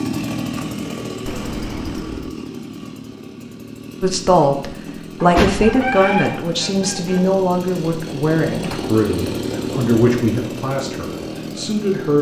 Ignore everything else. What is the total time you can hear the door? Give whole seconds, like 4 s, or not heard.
3 s.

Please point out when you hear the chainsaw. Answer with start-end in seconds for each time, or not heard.
0.0-12.1.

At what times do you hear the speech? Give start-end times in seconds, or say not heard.
4.0-12.1.